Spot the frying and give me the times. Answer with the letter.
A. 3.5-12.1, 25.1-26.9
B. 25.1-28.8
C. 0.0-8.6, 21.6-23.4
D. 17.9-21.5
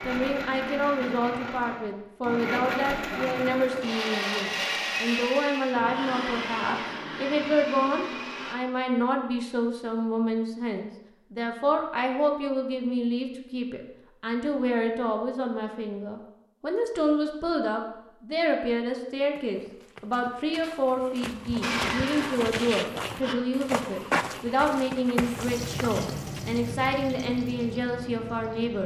B.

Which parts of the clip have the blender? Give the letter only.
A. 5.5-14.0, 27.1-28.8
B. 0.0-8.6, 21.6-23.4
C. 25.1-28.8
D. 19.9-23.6
B.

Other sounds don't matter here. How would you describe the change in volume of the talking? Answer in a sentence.
The loudness of the talking stays about the same.